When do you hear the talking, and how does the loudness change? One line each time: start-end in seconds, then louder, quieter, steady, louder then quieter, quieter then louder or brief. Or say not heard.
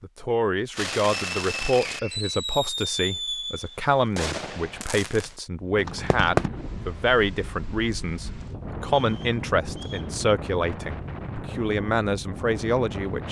0.0-13.2 steady.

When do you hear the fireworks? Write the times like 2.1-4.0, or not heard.
0.8-6.5.